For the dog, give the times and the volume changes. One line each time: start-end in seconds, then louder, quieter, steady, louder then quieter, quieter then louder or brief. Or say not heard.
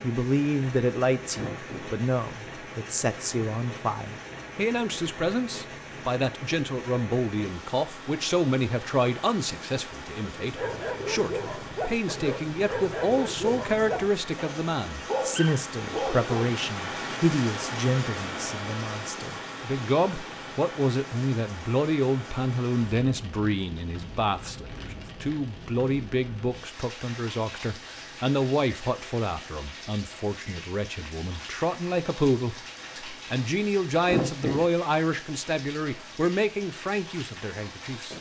10.3-16.4 steady.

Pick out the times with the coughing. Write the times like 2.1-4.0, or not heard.
1.3-1.9, 34.0-34.6.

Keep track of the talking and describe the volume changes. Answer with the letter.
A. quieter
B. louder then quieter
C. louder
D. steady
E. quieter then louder
D.